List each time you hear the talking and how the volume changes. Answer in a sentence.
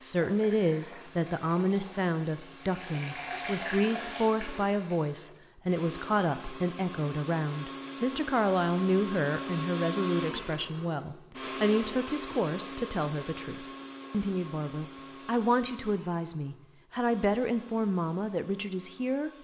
The talking can be heard from 0.0 to 19.3 s, at a steady volume.